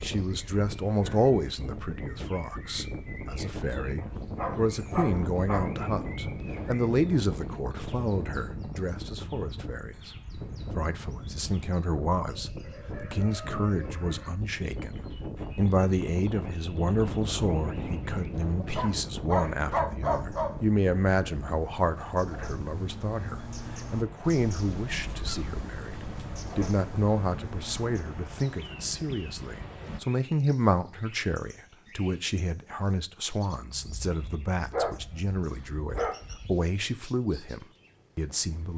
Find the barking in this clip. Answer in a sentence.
You can hear the barking from 4.0 to 6.7 s, from 18.6 to 20.6 s and from 33.8 to 36.6 s.